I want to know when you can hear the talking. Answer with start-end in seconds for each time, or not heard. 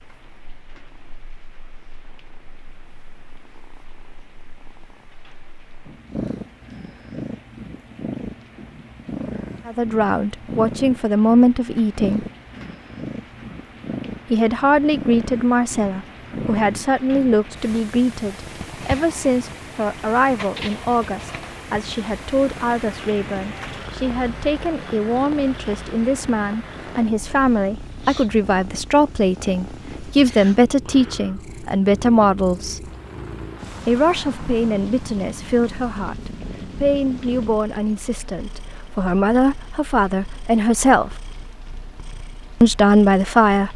9.7-12.2, 14.3-32.9, 33.9-41.1, 42.6-43.7.